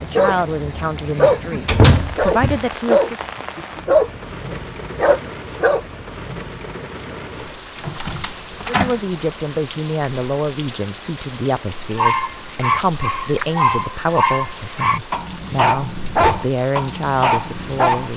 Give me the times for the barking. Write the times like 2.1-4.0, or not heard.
0.0-5.8, 11.9-18.1.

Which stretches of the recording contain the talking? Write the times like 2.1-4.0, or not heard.
0.0-3.1, 8.7-18.1.